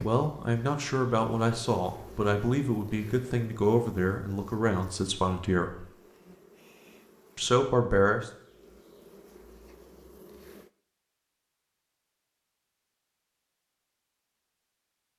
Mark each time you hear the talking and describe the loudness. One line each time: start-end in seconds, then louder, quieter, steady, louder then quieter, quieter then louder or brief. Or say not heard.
0.0-5.8 steady
7.3-8.3 brief.